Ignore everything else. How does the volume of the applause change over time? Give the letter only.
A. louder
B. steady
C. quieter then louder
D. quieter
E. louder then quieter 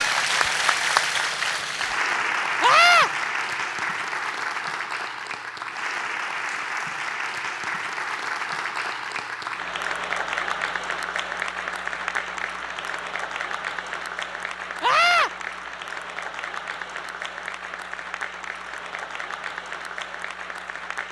D.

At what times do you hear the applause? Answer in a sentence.
The applause can be heard from 0.0 to 21.0 s.